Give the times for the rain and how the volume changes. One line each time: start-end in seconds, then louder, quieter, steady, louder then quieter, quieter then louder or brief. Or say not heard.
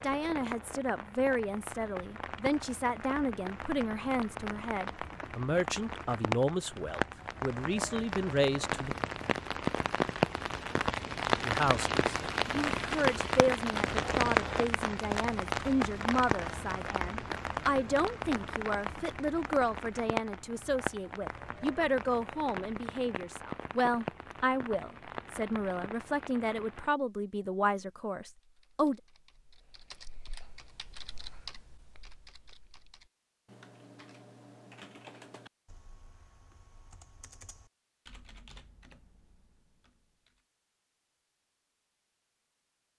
0.0-26.9 louder then quieter.